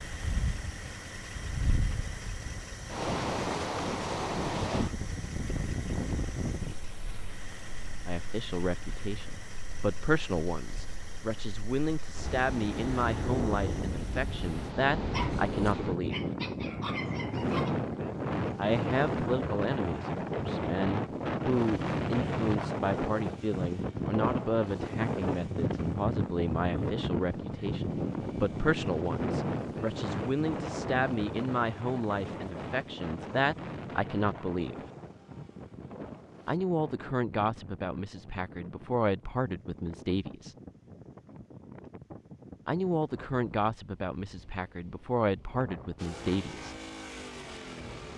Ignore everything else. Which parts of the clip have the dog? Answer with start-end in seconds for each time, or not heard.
15.1-17.9.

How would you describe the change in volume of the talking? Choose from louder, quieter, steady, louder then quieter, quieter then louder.
steady.